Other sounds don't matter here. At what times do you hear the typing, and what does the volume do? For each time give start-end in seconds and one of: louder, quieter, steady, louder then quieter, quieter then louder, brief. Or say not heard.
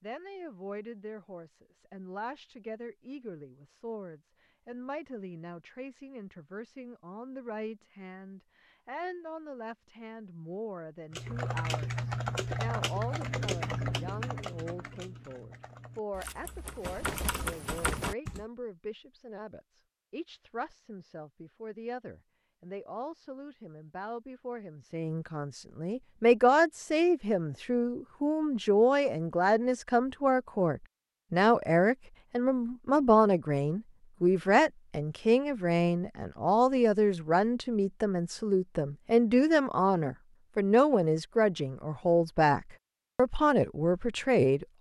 11.1-18.4 quieter then louder.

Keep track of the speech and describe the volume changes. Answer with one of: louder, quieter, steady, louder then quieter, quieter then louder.
louder.